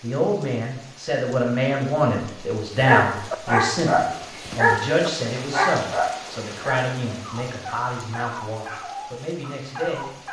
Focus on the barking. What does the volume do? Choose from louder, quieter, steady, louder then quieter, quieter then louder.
quieter.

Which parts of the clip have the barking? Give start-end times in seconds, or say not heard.
2.8-10.2.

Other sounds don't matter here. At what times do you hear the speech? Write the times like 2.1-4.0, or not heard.
0.0-10.1.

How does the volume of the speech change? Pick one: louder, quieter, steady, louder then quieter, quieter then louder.
quieter.